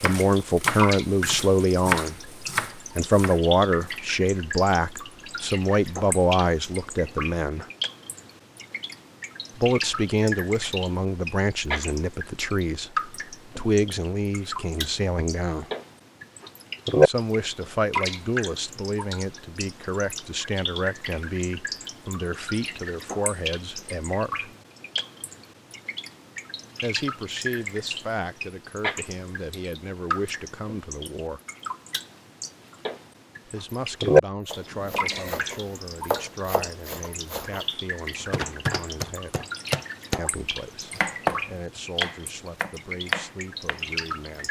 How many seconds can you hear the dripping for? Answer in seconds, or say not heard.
44 s.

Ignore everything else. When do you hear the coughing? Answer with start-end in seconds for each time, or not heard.
34.7-35.4.